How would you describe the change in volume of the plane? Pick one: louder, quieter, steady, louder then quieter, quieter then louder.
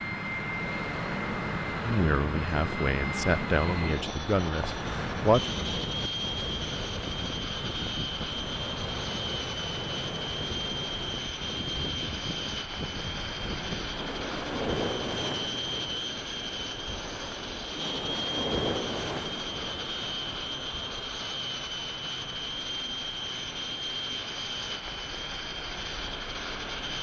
steady.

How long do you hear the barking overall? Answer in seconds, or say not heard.
not heard.